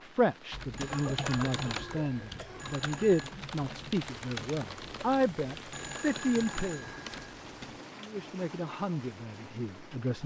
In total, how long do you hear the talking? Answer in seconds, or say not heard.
9 s.